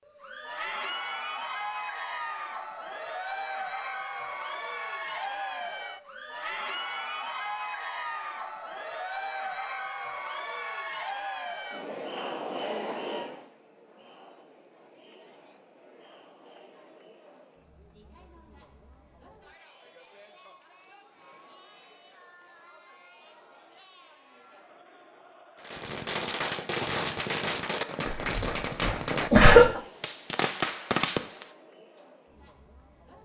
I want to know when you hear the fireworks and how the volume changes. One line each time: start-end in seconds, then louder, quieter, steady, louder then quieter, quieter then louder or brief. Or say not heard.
25.6-31.5 steady.